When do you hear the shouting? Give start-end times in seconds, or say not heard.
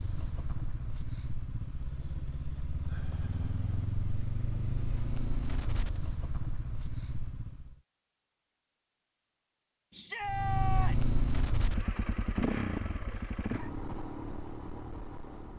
9.9-11.2.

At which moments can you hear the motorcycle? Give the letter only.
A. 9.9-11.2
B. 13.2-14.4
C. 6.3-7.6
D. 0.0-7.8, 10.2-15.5
D.